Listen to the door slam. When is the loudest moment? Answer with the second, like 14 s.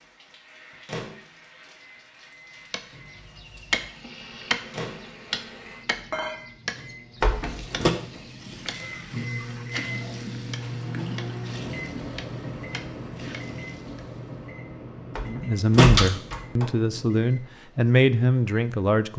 16 s.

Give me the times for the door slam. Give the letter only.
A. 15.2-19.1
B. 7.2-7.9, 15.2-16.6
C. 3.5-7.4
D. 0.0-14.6
B.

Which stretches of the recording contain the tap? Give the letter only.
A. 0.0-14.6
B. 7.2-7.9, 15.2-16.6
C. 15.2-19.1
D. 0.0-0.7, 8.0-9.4
A.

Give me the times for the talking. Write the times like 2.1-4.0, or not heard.
15.2-19.1.